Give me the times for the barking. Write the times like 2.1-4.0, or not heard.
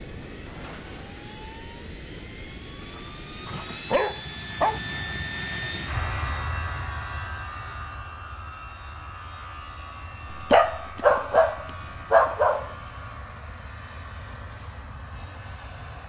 2.8-4.8, 10.3-12.7.